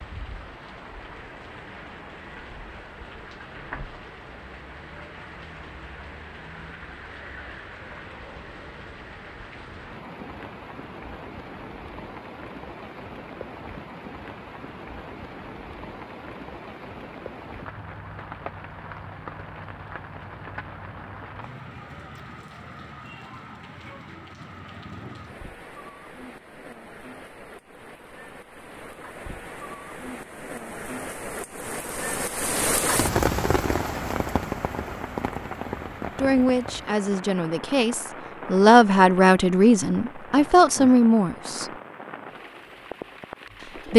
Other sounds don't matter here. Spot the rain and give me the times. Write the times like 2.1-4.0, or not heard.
0.0-43.9.